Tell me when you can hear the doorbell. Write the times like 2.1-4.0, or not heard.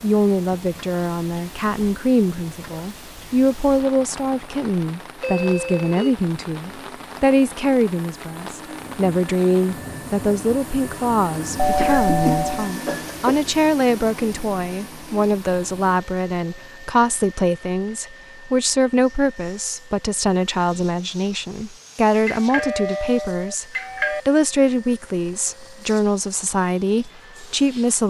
5.2-6.2, 11.6-12.7, 22.2-24.2.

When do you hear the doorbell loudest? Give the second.
12 s.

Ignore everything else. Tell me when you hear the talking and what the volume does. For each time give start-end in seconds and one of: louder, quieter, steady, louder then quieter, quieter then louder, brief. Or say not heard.
0.0-28.0 steady.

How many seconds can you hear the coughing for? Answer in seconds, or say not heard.
2 s.